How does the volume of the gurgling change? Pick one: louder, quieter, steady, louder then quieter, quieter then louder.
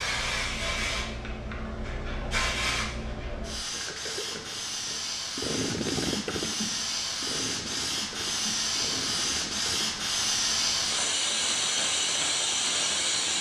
louder then quieter.